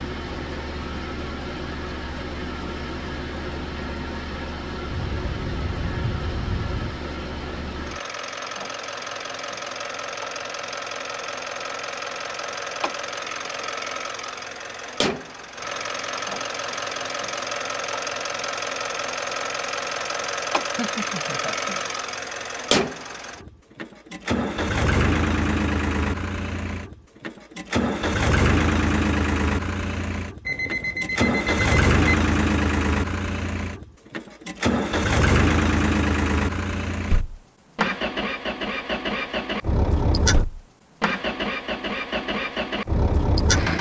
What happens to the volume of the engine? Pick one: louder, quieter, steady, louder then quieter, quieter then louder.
louder.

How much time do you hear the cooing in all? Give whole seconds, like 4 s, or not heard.
not heard.